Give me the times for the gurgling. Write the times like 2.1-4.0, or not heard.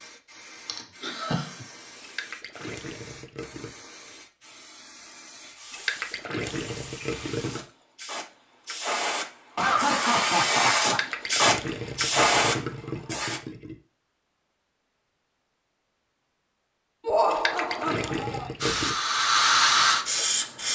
2.0-3.7, 5.7-7.7, 10.8-13.8, 17.2-18.9.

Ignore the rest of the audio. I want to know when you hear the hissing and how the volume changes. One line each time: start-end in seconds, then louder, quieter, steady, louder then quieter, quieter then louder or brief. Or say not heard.
0.0-13.4 louder
18.6-20.7 brief.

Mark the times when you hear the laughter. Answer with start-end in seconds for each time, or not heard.
0.7-1.5, 9.6-11.0, 17.1-18.5.